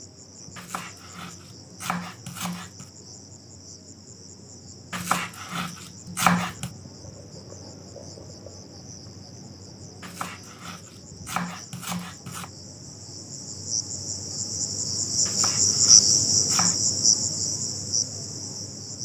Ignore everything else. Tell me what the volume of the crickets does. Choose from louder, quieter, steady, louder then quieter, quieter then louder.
louder.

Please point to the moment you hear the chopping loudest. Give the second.
6 s.